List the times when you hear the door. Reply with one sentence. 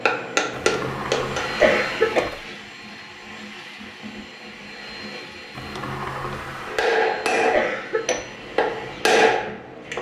You can hear the door from 0.5 to 2.5 s and from 5.5 to 6.9 s.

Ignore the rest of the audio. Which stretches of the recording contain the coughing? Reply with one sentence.
The coughing can be heard from 1.6 to 2.3 s and from 7.5 to 8.2 s.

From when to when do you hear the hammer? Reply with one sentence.
You can hear the hammer from 0.0 to 2.2 s and from 6.7 to 9.9 s.